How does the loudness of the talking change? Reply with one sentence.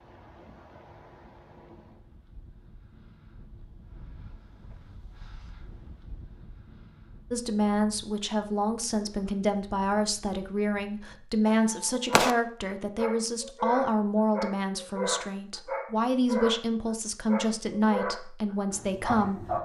The loudness of the talking stays about the same.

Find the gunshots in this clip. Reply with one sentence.
You can hear the gunshots from 11.4 to 12.3 s.